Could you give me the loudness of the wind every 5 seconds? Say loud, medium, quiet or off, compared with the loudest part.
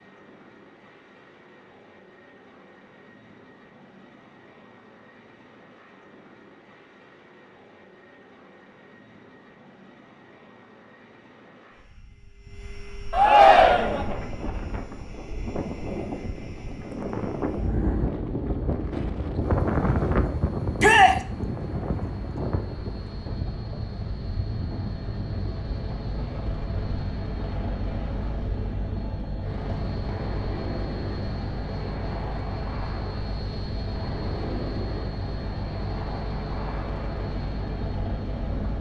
off, off, medium, loud, loud, medium, medium, medium.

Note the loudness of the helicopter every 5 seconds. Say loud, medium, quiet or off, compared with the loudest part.
quiet, quiet, quiet, quiet, medium, loud, loud, loud.